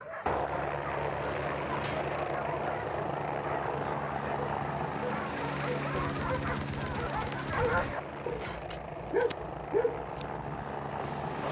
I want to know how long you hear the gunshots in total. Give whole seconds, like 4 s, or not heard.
2 s.